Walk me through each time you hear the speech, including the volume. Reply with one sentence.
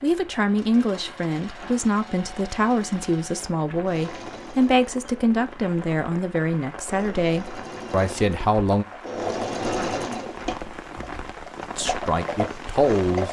You can hear the speech from 0.0 to 8.8 s, at a steady volume; and briefly from 11.8 to 13.2 s.